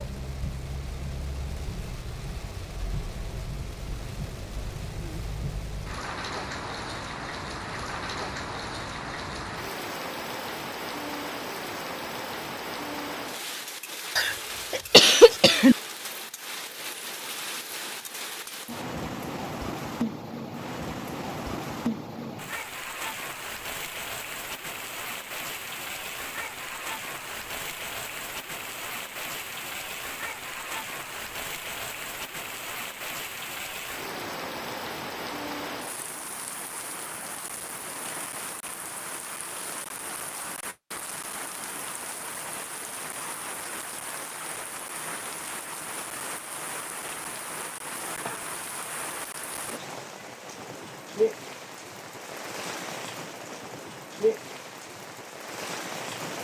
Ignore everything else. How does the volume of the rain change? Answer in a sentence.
The volume of the rain stays about the same.